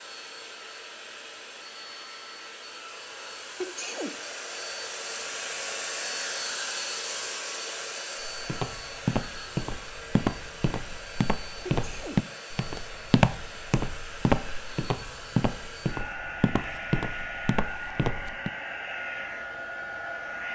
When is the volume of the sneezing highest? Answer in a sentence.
The loudest moment of the sneezing is at 4 seconds.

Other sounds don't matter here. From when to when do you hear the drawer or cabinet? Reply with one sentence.
You can't hear the drawer or cabinet here.